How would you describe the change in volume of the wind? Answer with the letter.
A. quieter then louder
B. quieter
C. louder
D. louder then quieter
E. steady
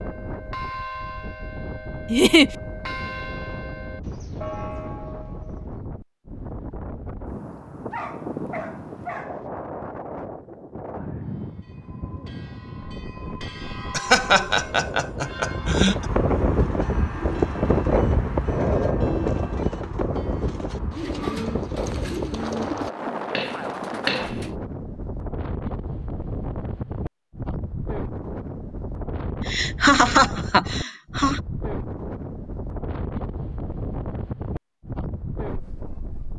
D.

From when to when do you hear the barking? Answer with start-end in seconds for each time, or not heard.
7.9-9.4.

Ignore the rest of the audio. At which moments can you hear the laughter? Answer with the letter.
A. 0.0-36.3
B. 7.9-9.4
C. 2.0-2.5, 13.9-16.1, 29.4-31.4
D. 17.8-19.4
C.